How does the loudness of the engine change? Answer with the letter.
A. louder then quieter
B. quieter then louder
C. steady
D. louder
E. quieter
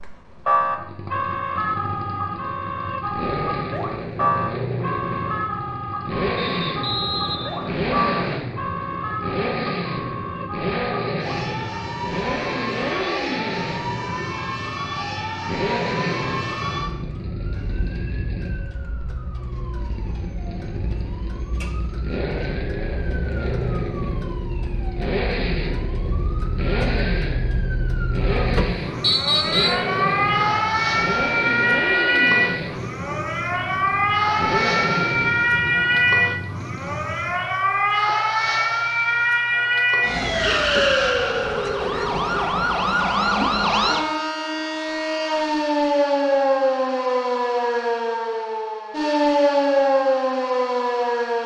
C.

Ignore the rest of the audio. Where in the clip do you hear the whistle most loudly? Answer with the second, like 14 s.
29 s.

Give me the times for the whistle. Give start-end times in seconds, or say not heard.
6.3-8.4, 29.0-29.9.